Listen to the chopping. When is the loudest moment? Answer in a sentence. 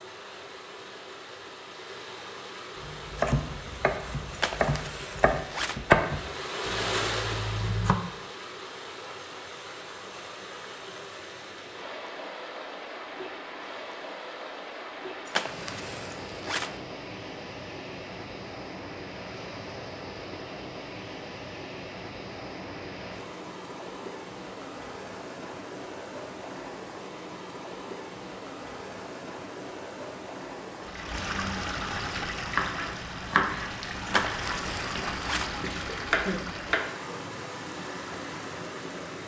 The loudest moment of the chopping is at 6 seconds.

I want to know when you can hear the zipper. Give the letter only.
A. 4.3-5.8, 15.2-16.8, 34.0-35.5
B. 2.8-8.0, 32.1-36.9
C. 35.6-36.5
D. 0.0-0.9
A.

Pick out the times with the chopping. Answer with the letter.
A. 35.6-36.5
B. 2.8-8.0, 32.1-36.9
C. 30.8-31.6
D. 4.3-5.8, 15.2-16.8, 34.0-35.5
B.